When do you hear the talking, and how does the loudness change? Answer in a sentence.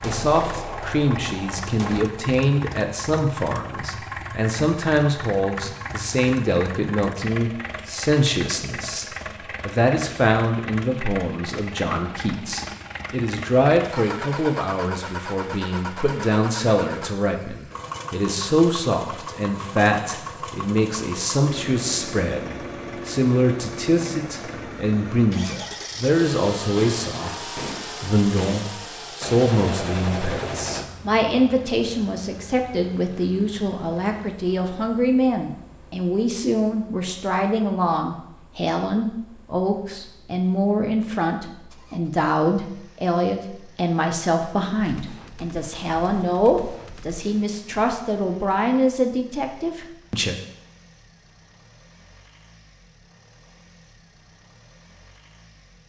The talking can be heard from 0.0 to 9.1 s, at a steady volume; and from 9.7 to 50.4 s, at a steady volume.